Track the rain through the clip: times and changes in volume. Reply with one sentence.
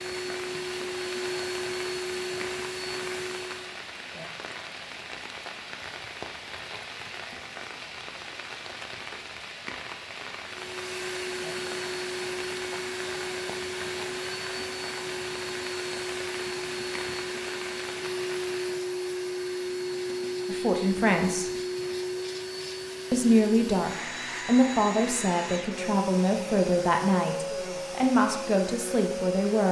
You can hear the rain from 0.0 to 18.9 s, at a steady volume.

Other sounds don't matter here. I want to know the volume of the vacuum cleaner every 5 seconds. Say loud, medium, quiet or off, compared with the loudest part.
loud, off, loud, loud, loud, loud.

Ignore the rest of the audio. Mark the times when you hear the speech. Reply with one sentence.
The speech can be heard from 20.4 to 21.5 s and from 23.1 to 29.6 s.